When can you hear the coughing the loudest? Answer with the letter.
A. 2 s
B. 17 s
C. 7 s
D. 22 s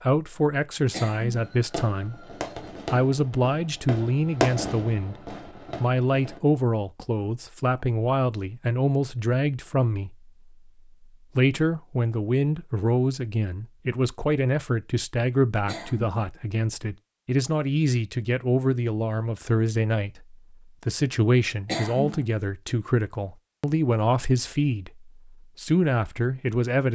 D.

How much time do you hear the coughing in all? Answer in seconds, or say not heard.
2 s.